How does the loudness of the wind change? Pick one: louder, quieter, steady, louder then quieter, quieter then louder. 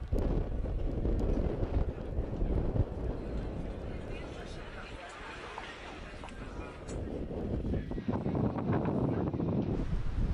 quieter then louder.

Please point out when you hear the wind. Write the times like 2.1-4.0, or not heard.
0.0-10.2.